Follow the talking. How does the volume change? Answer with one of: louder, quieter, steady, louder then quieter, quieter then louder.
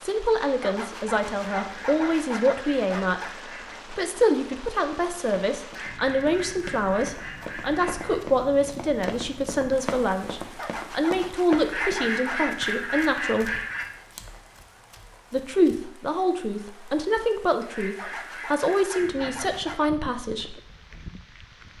steady.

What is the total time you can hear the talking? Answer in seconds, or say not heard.
19 s.